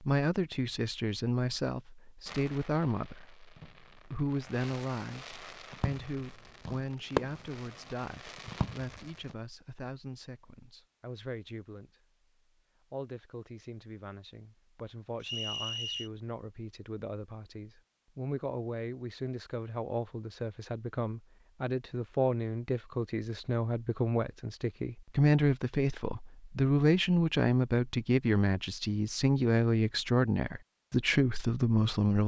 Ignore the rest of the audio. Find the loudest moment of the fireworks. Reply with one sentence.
The loudest moment of the fireworks is at 7 seconds.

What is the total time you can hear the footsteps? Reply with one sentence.
You can't hear the footsteps here.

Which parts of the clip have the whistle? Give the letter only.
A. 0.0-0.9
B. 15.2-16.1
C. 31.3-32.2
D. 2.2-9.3
B.